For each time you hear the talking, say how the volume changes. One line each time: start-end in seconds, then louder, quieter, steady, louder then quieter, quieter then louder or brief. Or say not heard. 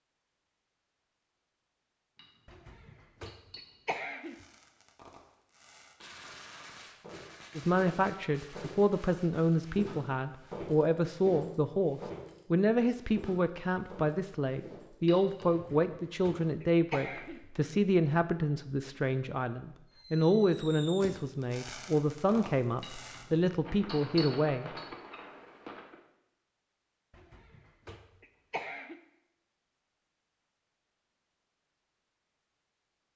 7.5-24.7 steady.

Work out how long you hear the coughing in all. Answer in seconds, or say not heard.
6 s.